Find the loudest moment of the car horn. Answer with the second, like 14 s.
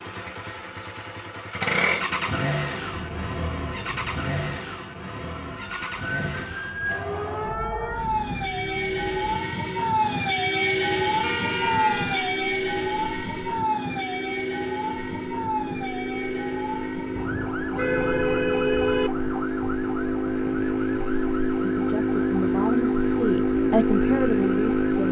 19 s.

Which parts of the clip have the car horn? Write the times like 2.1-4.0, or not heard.
2.9-4.6, 11.2-12.4, 17.1-19.1.